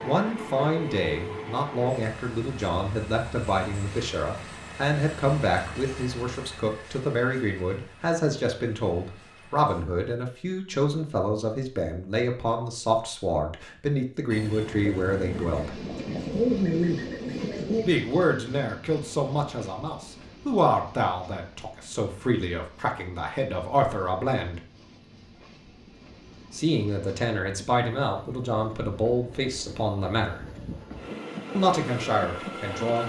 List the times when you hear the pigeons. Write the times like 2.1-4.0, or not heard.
14.8-17.9.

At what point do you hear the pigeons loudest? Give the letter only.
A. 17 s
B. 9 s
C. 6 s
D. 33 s
A.